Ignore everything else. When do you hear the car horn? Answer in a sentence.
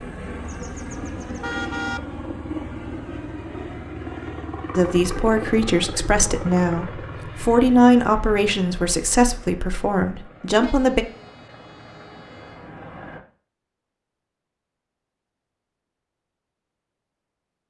The car horn can be heard from 0.5 to 2.0 s and from 10.6 to 12.7 s.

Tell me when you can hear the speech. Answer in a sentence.
You can hear the speech from 4.8 to 11.1 s.